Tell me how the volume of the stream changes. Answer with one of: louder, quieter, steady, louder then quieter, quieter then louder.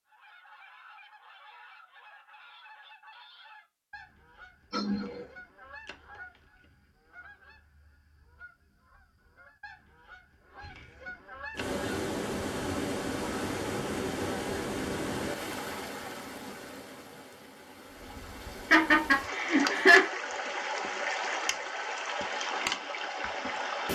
quieter then louder.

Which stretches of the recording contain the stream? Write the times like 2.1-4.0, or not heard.
11.6-23.9.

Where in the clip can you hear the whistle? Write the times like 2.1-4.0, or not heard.
not heard.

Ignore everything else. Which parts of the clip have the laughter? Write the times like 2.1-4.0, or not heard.
4.7-5.3, 18.7-20.1.